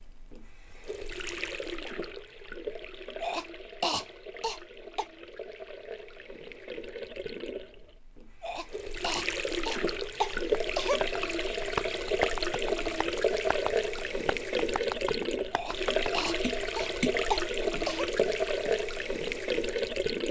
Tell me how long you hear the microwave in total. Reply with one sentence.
The microwave can't be heard in this clip.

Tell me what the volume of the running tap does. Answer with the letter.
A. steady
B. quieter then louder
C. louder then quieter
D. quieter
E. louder
E.